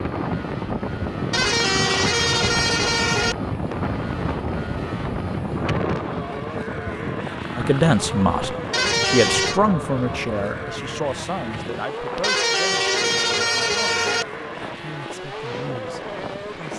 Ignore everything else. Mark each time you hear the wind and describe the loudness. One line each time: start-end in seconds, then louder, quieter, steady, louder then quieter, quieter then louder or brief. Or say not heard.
0.0-16.7 quieter.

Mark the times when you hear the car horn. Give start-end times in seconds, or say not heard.
1.3-3.4, 8.7-9.6, 12.2-14.2.